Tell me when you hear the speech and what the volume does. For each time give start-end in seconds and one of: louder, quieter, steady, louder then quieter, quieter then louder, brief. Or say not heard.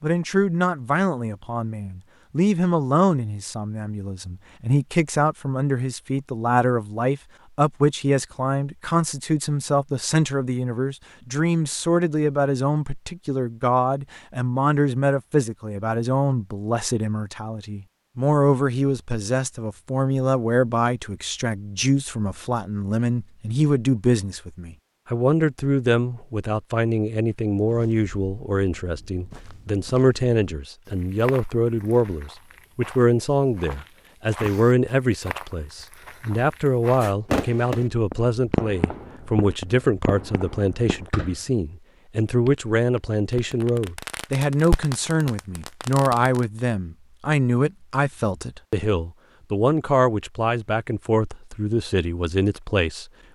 0.0-53.0 steady.